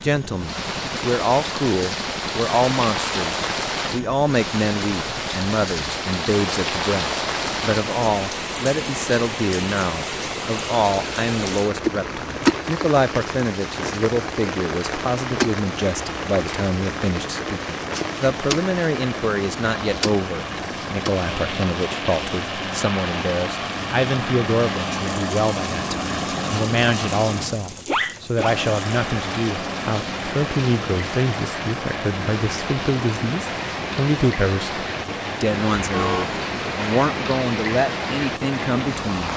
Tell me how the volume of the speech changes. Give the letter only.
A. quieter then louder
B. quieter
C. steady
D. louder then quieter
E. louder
C.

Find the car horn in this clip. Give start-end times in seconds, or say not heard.
35.9-36.5.